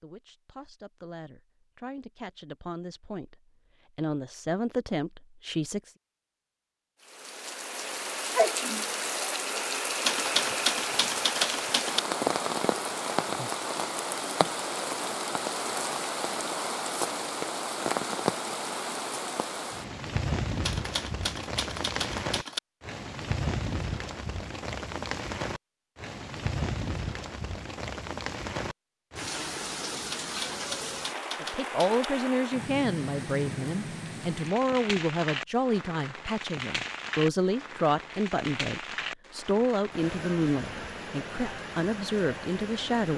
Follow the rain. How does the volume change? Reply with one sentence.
The loudness of the rain goes down.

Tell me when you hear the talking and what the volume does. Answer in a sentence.
You can hear the talking from 0.0 to 5.9 s, getting louder; and from 31.4 to 43.1 s, at a steady volume.